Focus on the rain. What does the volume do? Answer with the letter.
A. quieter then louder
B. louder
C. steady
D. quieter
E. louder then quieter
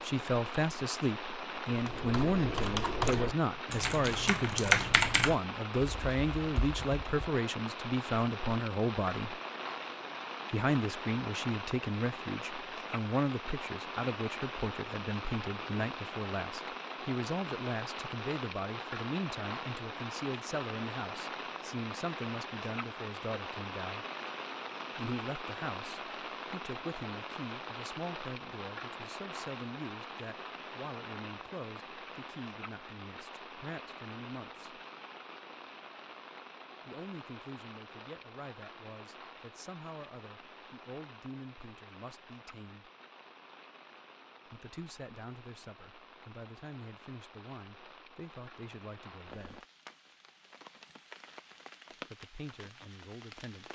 D.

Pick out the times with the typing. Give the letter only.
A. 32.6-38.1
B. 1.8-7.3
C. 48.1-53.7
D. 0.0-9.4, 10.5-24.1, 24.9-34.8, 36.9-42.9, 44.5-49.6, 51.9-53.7
B.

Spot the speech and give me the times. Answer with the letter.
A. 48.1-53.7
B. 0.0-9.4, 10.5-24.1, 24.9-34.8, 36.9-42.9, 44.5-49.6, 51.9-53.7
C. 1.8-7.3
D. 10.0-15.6
B.